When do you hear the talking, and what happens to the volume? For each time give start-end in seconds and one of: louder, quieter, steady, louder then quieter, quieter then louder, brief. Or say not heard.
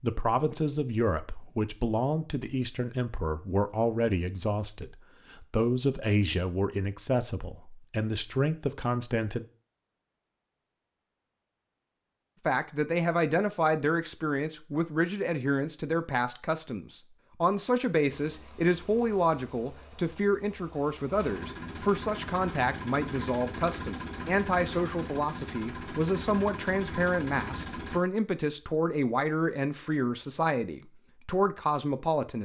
0.0-9.4 steady
12.4-32.3 steady.